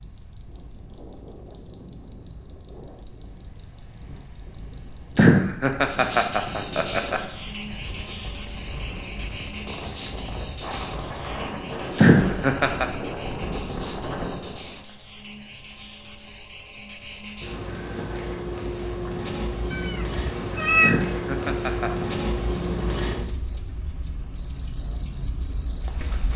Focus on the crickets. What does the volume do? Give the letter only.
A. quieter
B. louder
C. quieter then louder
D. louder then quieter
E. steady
C.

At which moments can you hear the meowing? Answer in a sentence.
The meowing can be heard from 19.7 to 20.9 s.